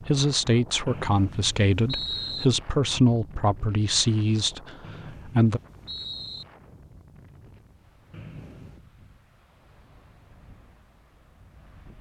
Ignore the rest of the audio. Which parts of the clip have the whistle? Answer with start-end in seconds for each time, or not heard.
0.8-2.5, 4.8-6.5, 8.1-8.8.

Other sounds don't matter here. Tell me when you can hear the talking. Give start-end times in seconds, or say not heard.
0.0-5.6.